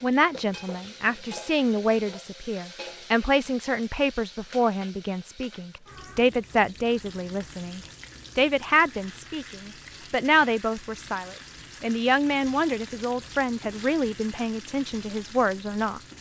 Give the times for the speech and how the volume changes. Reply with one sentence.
You can hear the speech from 0.0 to 16.0 s, at a steady volume.